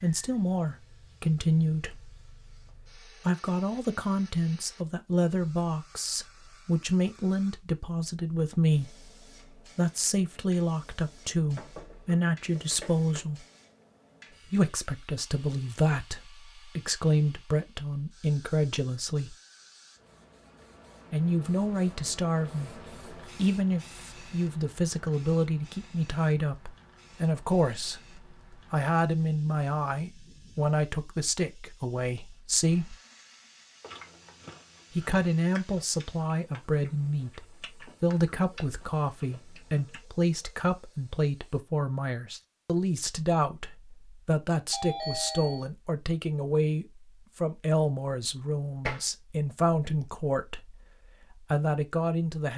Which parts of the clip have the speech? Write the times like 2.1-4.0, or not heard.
0.0-13.4, 14.5-19.4, 21.1-33.0, 35.0-52.5.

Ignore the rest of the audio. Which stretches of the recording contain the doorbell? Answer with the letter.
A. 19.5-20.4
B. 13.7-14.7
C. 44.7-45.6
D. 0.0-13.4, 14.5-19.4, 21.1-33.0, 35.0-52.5
C.